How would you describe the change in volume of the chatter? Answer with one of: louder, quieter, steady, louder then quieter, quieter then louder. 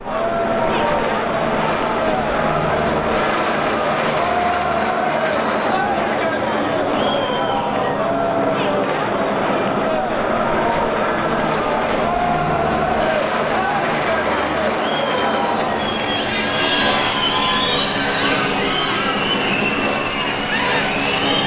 steady.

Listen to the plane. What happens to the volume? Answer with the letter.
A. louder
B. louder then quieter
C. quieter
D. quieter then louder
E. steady
E.